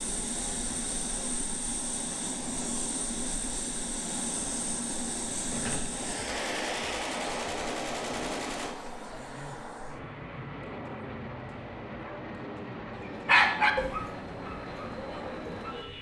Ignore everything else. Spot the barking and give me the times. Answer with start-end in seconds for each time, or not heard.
13.2-15.9.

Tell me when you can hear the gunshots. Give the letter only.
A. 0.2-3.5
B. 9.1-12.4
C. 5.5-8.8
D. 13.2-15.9
C.